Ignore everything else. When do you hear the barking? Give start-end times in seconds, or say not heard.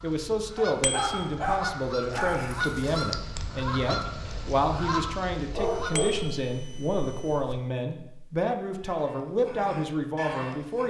0.6-3.0, 5.5-7.5.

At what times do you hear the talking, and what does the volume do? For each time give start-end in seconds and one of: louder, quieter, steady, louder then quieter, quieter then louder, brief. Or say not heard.
0.0-10.8 steady.